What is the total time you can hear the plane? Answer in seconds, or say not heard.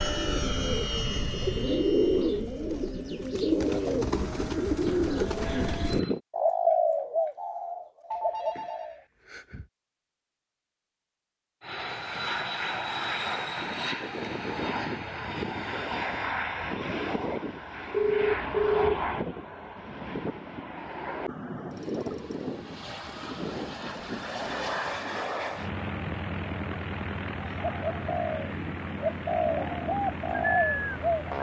26 s.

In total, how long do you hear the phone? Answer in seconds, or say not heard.
3 s.